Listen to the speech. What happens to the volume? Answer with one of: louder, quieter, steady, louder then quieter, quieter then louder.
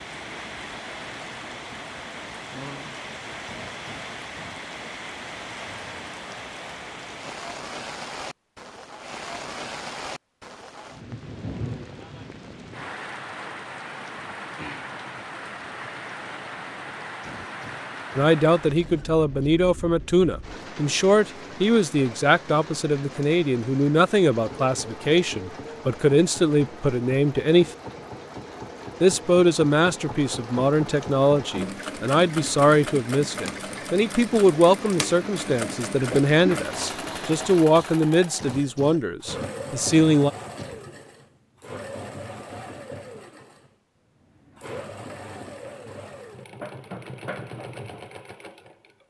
steady.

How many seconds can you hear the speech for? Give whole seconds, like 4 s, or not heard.
21 s.